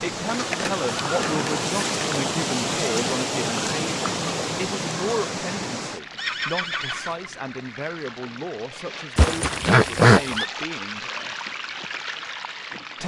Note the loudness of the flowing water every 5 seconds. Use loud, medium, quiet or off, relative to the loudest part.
loud, medium, medium.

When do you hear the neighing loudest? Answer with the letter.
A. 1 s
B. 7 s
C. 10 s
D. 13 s
C.